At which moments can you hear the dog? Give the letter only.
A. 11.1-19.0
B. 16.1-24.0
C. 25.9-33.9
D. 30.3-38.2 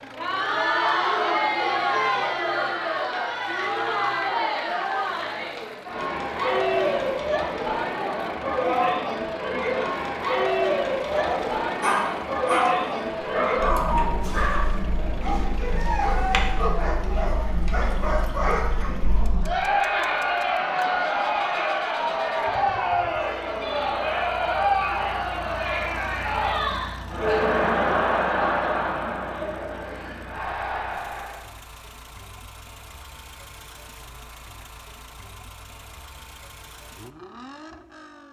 A.